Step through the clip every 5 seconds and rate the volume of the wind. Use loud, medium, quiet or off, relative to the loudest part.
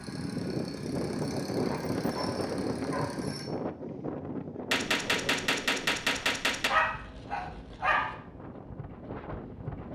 loud, medium.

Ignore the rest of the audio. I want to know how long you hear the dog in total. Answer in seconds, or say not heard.
3 s.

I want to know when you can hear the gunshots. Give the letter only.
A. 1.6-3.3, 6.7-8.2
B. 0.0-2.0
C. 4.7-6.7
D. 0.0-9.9
C.